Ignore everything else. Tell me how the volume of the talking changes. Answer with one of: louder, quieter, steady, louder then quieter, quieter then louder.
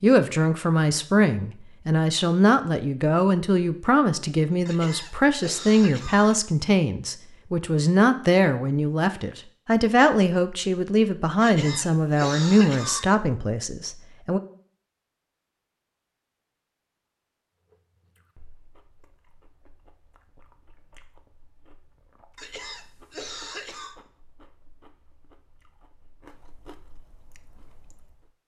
steady.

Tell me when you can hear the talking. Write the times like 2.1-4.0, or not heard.
0.0-14.4.